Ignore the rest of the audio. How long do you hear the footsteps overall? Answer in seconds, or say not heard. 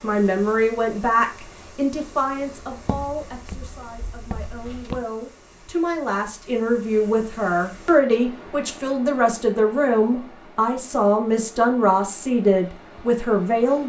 2 s.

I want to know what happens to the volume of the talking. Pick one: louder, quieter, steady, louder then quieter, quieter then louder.
quieter then louder.